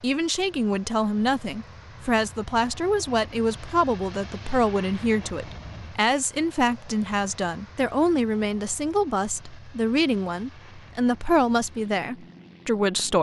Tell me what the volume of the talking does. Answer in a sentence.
The loudness of the talking stays about the same.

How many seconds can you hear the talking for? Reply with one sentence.
You can hear the talking for 13 seconds altogether.